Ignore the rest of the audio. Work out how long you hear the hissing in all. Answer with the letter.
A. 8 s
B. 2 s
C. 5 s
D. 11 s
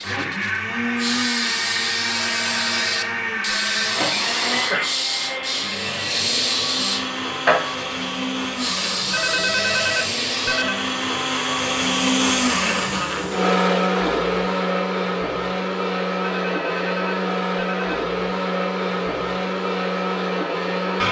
D.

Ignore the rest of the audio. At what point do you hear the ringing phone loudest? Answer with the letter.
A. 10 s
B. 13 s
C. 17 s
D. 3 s
A.